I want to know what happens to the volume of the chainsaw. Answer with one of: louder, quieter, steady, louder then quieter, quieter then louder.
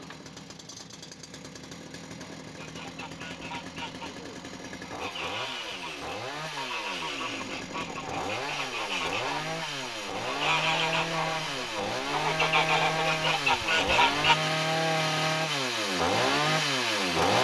louder.